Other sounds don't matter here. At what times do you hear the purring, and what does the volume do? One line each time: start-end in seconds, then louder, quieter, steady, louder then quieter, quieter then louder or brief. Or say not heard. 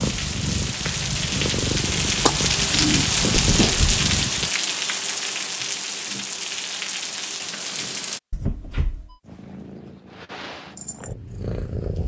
0.0-4.5 steady
9.2-12.0 brief.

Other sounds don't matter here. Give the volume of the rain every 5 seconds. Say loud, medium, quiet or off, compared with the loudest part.
loud, medium, off.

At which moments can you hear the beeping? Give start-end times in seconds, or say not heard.
3.4-4.0, 8.3-9.2.